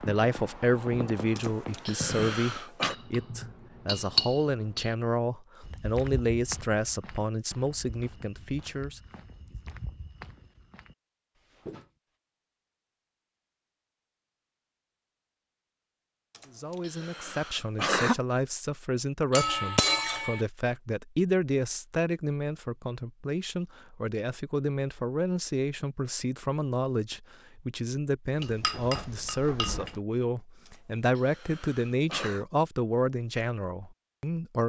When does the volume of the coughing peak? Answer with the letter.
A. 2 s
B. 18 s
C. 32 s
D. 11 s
B.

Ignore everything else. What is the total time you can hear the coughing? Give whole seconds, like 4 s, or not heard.
5 s.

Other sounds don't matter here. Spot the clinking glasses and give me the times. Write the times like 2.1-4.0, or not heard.
2.8-4.9, 19.3-20.4, 28.4-30.0.